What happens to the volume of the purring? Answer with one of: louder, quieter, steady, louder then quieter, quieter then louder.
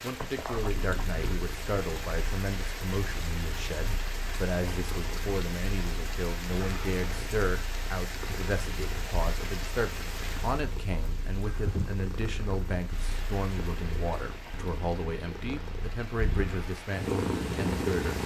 louder.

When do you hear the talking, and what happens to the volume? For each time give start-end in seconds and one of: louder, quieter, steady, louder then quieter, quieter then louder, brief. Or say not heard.
0.0-18.2 steady.